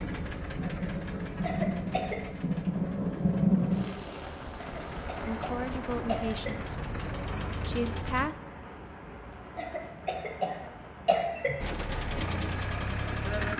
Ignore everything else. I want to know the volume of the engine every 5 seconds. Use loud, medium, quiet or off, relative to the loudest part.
medium, medium, loud.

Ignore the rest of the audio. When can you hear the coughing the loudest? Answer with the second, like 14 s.
11 s.